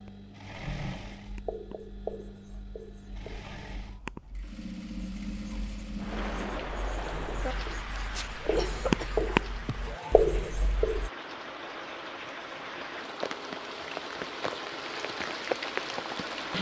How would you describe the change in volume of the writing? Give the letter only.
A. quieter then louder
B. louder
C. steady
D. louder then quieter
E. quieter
A.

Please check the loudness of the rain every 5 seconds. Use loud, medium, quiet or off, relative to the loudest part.
off, medium, medium, loud.